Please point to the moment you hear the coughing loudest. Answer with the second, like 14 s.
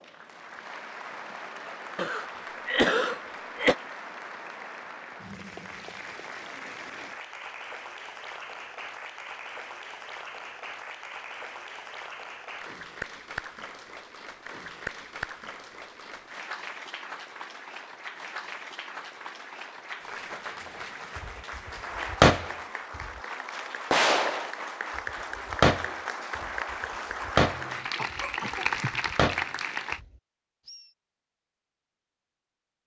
3 s.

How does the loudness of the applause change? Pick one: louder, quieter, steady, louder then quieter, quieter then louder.
louder.